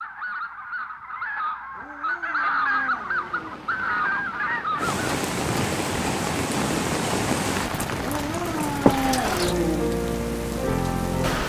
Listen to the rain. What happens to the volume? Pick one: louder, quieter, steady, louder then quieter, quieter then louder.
louder.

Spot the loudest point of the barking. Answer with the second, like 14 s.
9 s.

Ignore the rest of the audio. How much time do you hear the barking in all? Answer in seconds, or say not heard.
4 s.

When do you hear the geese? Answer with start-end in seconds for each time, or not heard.
0.0-11.4.